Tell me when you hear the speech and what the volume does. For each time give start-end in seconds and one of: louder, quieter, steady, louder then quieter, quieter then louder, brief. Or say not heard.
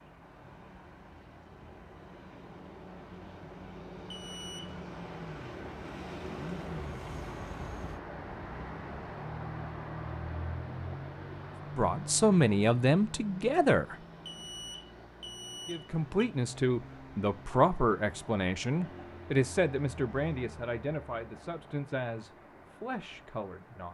11.8-13.9 brief
15.7-23.8 quieter.